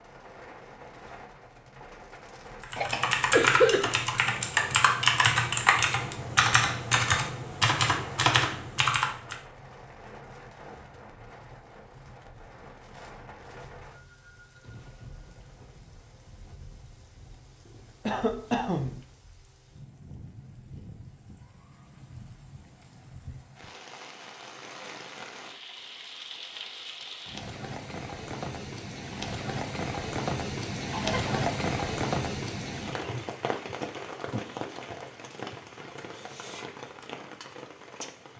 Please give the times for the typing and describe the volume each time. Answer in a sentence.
The typing can be heard from 2.6 to 9.3 s, at a steady volume.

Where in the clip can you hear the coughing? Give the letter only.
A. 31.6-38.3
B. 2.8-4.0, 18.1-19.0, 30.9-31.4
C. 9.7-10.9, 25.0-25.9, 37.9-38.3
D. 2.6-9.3
B.